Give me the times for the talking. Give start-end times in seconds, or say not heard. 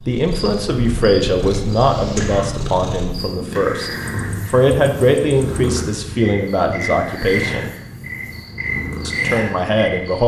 0.0-7.7, 9.1-10.2.